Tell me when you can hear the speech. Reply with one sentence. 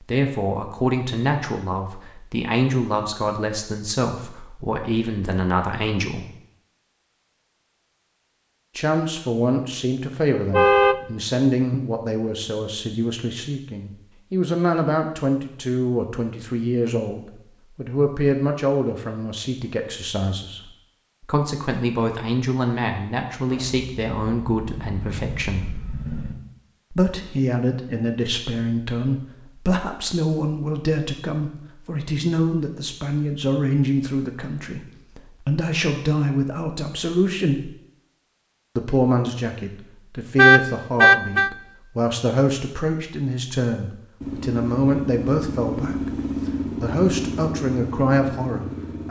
The speech can be heard from 0.0 to 6.2 s, from 8.8 to 20.6 s, from 21.2 to 25.8 s, from 26.9 to 37.7 s and from 38.8 to 49.0 s.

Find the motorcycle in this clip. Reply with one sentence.
The motorcycle can be heard from 23.4 to 26.4 s and from 44.2 to 49.0 s.